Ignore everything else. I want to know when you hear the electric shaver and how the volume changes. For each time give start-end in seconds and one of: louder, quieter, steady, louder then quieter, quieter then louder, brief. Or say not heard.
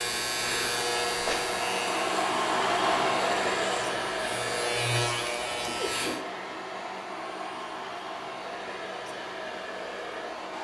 0.0-6.2 quieter then louder.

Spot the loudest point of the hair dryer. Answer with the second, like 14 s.
3 s.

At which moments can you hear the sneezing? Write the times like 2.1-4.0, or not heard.
0.4-1.4, 5.7-6.5.